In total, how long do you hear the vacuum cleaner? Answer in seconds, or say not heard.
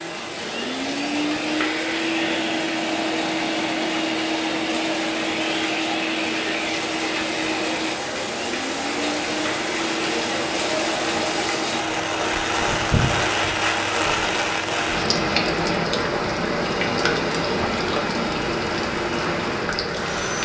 20 s.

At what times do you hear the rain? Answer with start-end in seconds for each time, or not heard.
0.0-20.3.